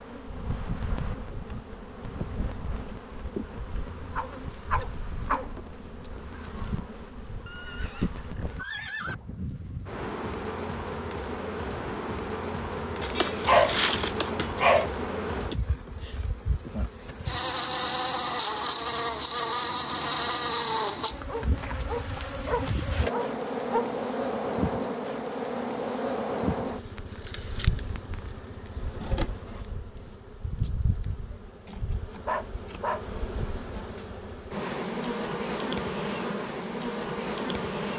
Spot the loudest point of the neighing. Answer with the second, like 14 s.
9 s.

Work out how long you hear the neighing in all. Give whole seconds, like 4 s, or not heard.
2 s.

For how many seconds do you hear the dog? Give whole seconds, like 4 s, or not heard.
7 s.